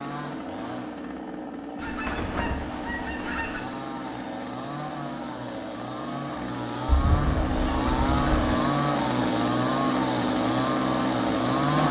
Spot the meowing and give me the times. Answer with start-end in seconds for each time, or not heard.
not heard.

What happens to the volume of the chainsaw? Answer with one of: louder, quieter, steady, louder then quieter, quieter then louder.
louder.